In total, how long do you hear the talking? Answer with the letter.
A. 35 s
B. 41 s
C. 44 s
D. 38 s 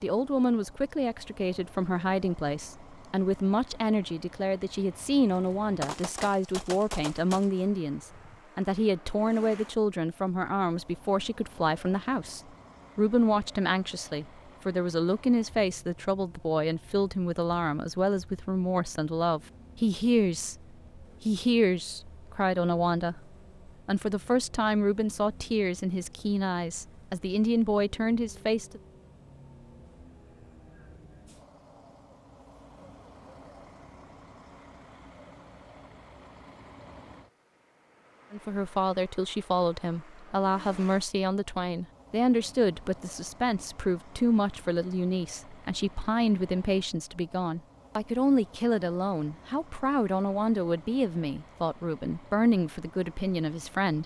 C.